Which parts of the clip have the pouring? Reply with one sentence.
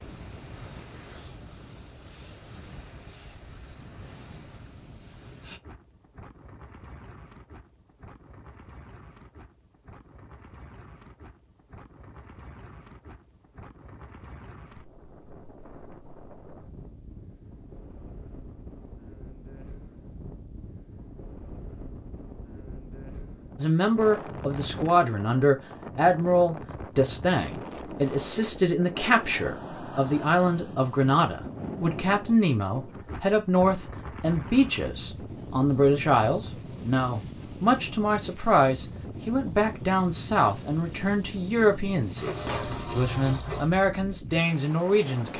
You can hear the pouring from 42.1 to 43.7 s.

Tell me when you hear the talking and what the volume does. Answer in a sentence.
The talking can be heard from 23.6 to 45.3 s, at a steady volume.